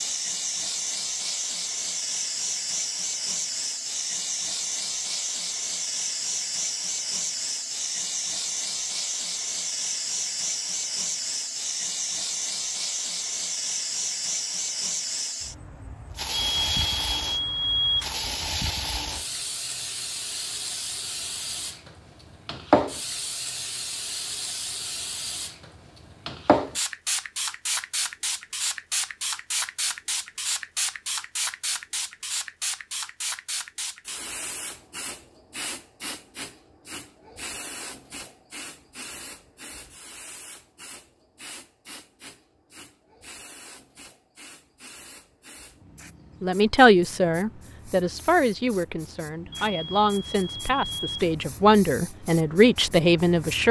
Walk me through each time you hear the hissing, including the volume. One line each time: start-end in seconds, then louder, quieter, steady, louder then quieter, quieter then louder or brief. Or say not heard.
0.0-53.6 quieter.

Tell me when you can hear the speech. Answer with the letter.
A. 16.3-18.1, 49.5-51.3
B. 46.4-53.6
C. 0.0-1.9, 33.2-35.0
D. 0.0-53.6
B.